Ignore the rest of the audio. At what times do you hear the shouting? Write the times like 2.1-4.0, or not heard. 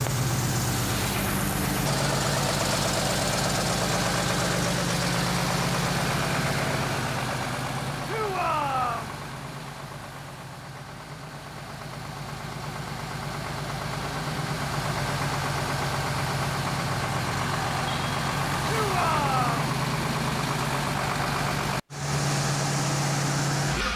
8.1-9.2, 18.6-19.6.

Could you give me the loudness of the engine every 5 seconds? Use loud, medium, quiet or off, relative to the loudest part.
loud, loud, medium, loud, loud.